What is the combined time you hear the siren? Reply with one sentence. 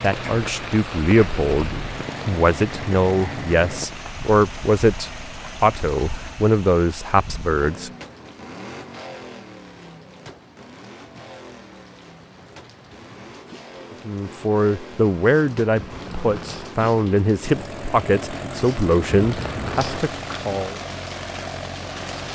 The siren can't be heard in this clip.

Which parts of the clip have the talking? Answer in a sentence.
The talking can be heard from 0.0 to 7.9 s and from 14.1 to 20.8 s.